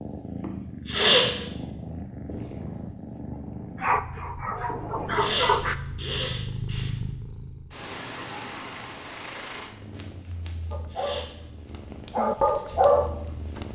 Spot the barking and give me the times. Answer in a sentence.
You can hear the barking from 3.2 to 5.8 s and from 10.7 to 13.6 s.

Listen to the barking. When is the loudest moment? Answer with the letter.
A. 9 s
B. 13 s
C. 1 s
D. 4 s
B.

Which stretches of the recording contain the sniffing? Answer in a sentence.
The sniffing can be heard from 0.4 to 1.3 s, from 4.7 to 6.9 s and from 10.4 to 11.3 s.